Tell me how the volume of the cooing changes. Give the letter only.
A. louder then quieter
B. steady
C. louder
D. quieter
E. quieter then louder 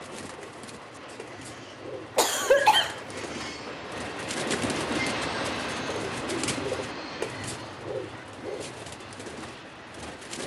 A.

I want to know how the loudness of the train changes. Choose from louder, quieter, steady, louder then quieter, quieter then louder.
louder then quieter.